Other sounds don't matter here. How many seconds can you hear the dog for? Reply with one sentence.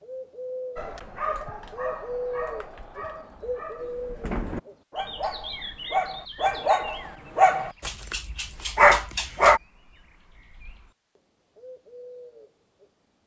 The dog can be heard for 9 seconds in total.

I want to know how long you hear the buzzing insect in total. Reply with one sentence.
The buzzing insect can't be heard in this clip.